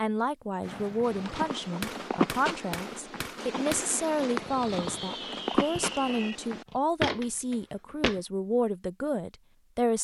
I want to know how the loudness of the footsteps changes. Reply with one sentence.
The volume of the footsteps goes down, then up.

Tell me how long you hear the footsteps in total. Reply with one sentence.
You can hear the footsteps for 7 seconds altogether.